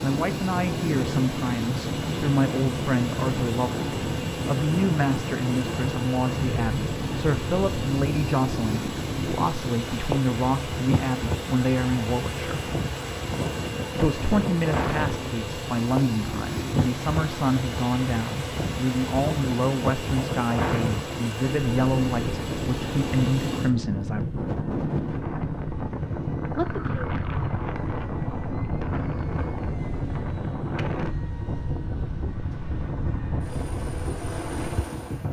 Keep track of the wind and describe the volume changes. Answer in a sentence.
The volume of the wind stays about the same.